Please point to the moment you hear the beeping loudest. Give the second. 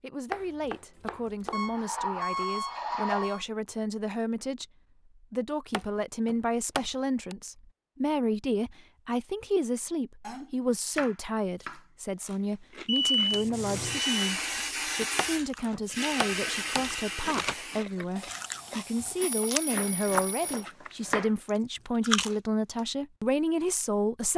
13 s.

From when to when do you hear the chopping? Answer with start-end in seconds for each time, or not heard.
0.3-1.8, 5.7-7.3, 10.2-11.8, 15.2-16.9, 19.6-21.3.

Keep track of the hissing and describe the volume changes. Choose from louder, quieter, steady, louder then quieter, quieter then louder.
quieter.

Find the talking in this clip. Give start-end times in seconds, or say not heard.
0.0-24.3.